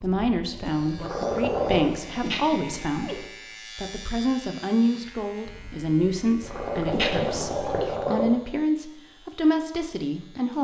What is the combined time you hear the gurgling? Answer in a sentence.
The gurgling can be heard for 5 seconds in total.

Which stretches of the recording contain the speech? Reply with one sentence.
The speech can be heard from 0.0 to 10.5 s.